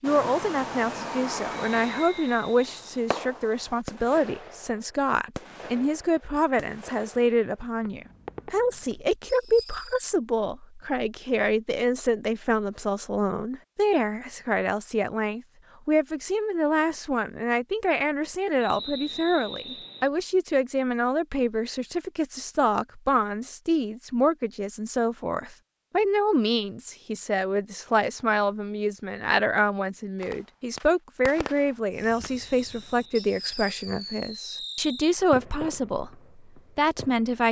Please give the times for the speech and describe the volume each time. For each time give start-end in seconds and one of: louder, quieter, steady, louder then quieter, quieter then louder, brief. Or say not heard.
0.0-37.4 steady.